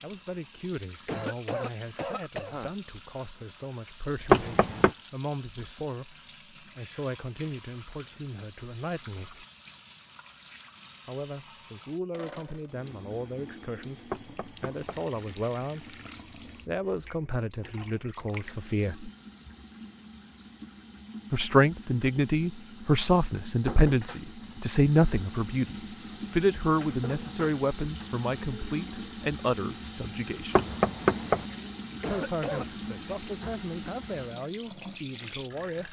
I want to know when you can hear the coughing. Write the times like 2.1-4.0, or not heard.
1.1-2.7, 32.0-32.6.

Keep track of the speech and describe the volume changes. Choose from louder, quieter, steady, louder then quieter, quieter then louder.
louder then quieter.